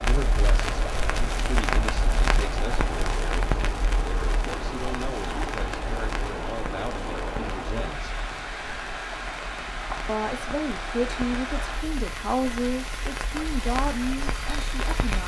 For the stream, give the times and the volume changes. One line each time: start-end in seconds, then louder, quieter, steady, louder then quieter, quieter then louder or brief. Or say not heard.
0.0-15.2 steady.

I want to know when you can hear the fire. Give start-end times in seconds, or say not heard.
0.0-15.2.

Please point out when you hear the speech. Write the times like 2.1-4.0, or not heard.
0.0-8.2, 10.1-15.2.